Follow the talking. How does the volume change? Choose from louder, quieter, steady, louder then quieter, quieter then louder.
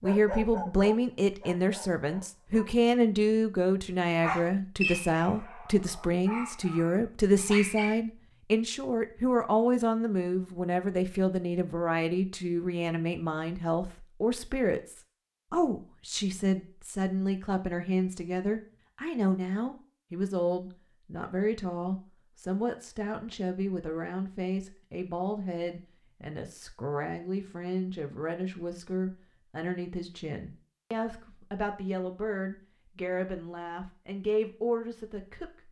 quieter.